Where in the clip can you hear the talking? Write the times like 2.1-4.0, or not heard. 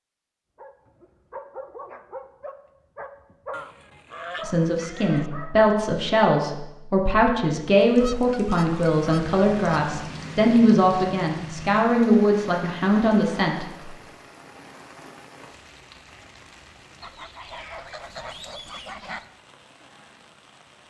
4.4-13.9.